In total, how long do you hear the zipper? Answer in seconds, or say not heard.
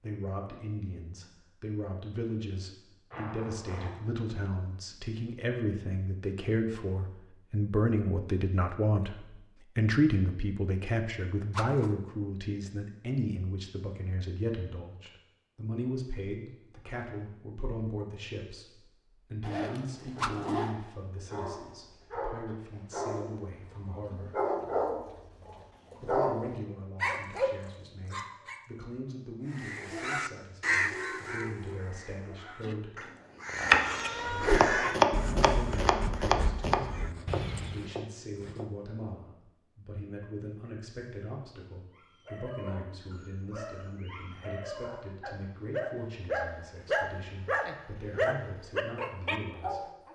4 s.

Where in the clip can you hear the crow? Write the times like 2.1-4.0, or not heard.
29.5-37.9.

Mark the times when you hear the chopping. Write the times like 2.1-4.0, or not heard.
32.6-38.7.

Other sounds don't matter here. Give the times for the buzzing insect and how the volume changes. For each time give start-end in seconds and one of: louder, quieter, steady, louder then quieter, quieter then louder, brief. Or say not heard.
not heard.